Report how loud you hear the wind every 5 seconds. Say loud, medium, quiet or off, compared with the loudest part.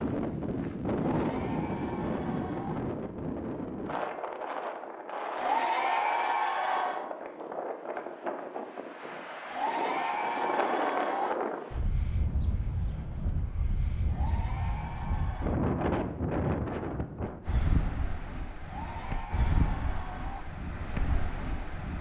loud, medium, loud, loud, medium.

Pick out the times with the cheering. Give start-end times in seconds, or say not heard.
0.9-2.8, 5.3-7.1, 9.4-11.3, 14.1-15.6, 18.6-20.4.